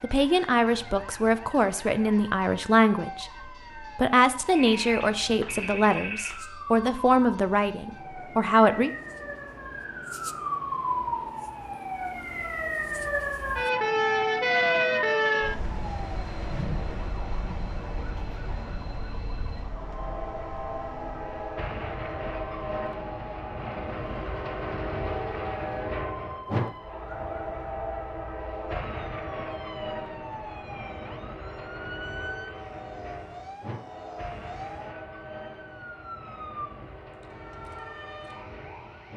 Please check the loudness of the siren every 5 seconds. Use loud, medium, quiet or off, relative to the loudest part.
quiet, quiet, loud, medium, quiet, quiet, quiet, quiet.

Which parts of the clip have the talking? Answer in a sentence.
The talking can be heard from 0.0 to 8.9 s.